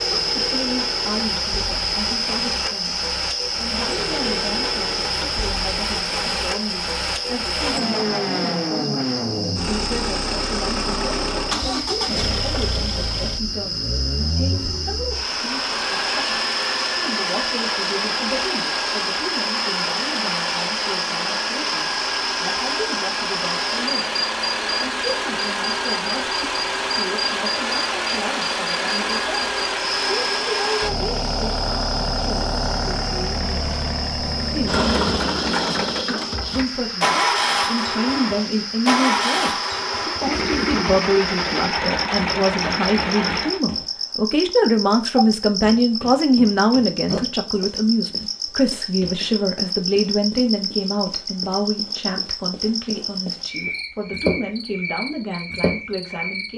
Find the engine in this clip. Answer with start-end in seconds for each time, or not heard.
0.0-43.6.